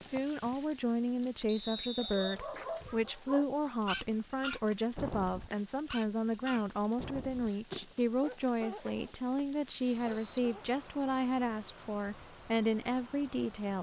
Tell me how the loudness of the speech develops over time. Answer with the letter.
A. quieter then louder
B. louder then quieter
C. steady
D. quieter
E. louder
C.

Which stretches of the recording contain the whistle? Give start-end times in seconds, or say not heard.
1.4-2.4, 9.7-10.5.